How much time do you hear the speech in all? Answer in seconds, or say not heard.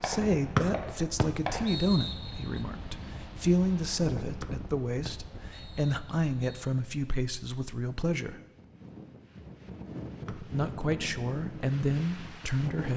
11 s.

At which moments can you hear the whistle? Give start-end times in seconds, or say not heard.
0.6-2.6, 4.4-6.7, 10.2-10.9.